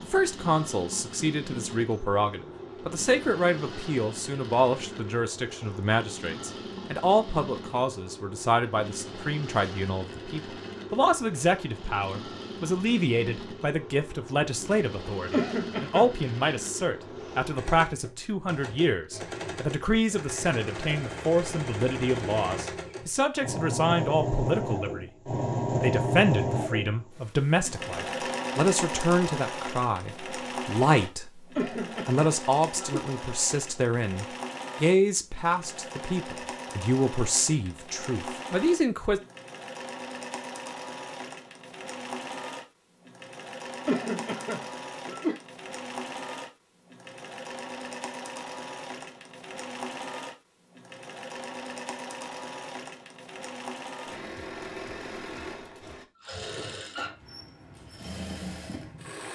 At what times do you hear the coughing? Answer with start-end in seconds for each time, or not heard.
15.3-16.1, 31.6-33.0, 43.9-45.4.